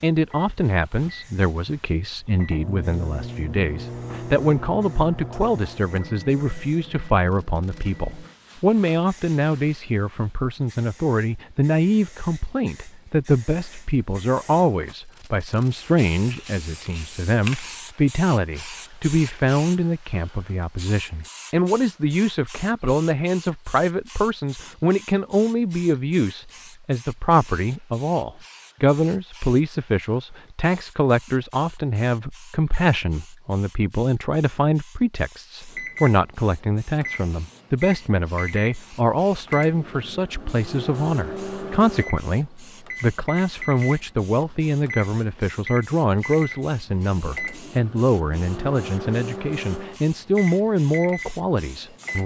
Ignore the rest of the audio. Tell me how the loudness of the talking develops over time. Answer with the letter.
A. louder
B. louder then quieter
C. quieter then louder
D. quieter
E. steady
E.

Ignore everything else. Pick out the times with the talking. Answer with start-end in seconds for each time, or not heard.
0.0-52.2.